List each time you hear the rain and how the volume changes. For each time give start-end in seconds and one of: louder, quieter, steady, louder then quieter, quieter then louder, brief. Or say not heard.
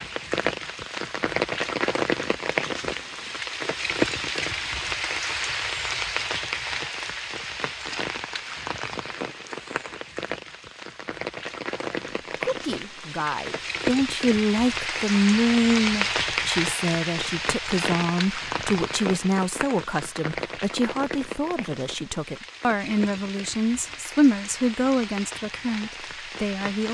0.0-26.8 quieter.